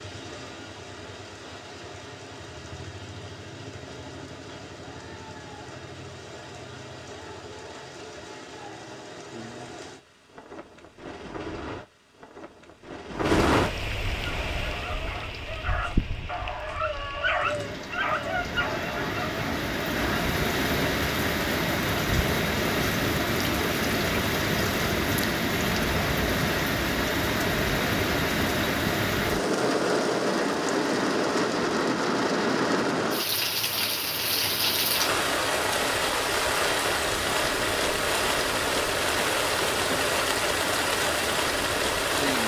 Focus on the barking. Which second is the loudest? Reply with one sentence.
The loudest moment of the barking is at 17 seconds.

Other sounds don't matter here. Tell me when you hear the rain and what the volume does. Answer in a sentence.
The rain can be heard from 0.0 to 42.4 s, getting louder.